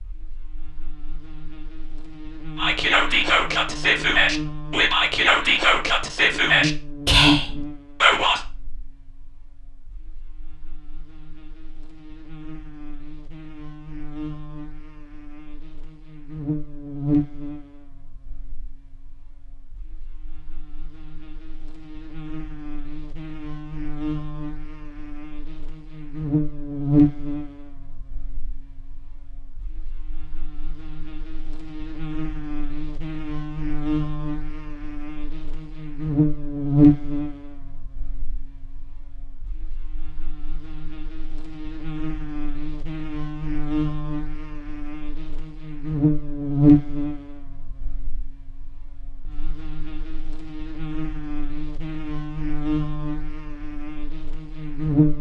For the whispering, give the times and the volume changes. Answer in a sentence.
You can hear the whispering from 2.5 to 8.4 s, at a steady volume.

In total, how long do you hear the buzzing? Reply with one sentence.
You can hear the buzzing for 55 seconds altogether.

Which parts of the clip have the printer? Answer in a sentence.
You can't hear the printer here.